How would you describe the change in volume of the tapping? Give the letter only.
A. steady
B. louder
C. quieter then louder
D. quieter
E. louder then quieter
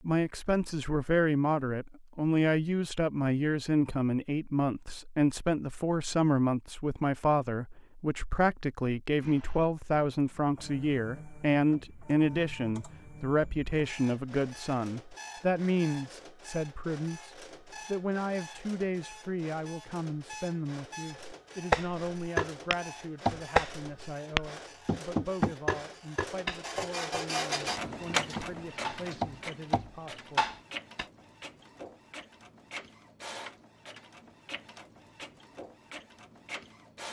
C.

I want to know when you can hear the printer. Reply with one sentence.
The printer can be heard from 9.2 to 37.0 s.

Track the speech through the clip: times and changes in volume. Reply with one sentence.
You can hear the speech from 0.0 to 30.5 s, getting quieter.